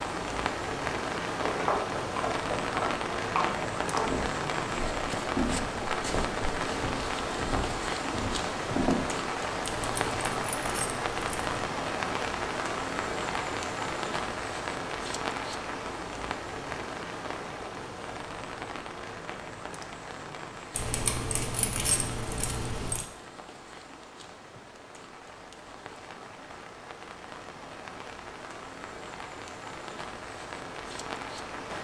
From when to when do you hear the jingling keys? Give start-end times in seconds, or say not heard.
9.7-11.5, 20.7-23.1.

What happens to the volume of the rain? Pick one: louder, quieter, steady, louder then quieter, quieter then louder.
quieter.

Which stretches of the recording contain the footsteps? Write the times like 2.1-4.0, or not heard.
1.4-9.1.